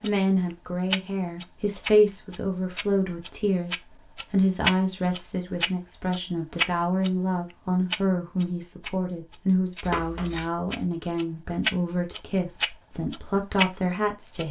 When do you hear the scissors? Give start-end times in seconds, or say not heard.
9.8-10.5.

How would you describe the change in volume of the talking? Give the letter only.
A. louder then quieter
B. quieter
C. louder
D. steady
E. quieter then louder
D.